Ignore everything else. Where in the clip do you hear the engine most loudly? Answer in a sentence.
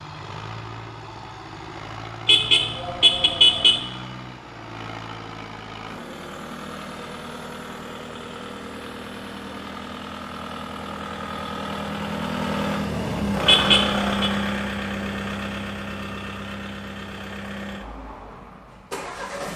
The loudest moment of the engine is at 14 seconds.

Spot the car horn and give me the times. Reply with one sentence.
You can hear the car horn from 2.2 to 3.8 s and from 13.4 to 14.1 s.